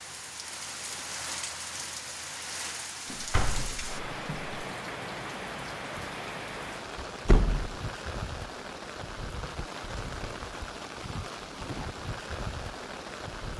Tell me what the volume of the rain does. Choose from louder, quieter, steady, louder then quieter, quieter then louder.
steady.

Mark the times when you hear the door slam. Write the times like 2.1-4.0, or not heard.
3.1-4.5, 7.2-7.8.